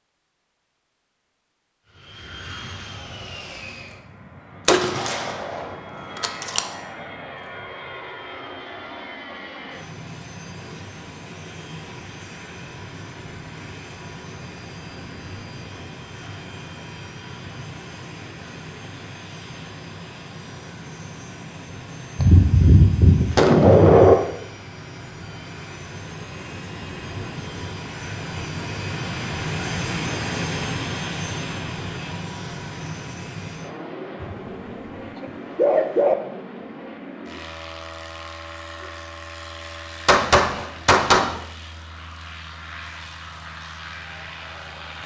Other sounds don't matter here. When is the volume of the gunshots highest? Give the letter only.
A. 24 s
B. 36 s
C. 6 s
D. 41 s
A.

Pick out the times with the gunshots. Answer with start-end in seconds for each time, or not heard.
4.7-6.6, 22.1-24.1, 40.0-41.4.